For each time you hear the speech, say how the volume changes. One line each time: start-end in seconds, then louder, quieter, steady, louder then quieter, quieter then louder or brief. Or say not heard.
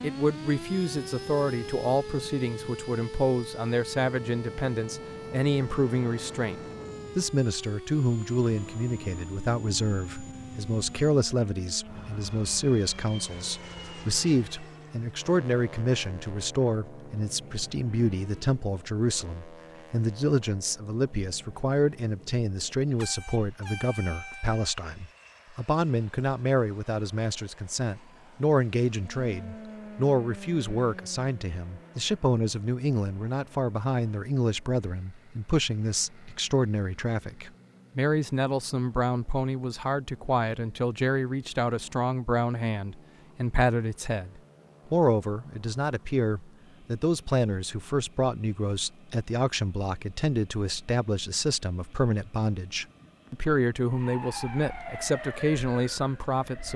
0.0-56.7 steady.